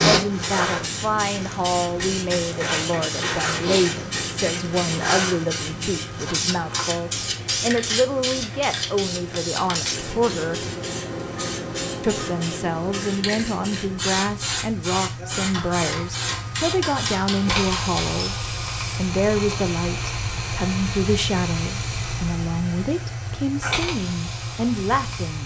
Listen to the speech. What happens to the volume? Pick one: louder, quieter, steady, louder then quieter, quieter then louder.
steady.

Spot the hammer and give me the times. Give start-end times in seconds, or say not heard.
1.9-4.3, 15.5-18.2.